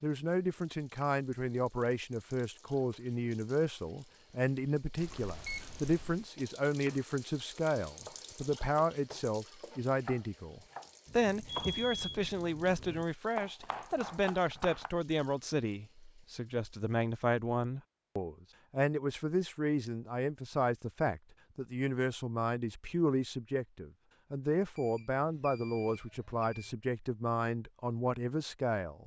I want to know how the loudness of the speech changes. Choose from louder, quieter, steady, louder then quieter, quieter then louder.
steady.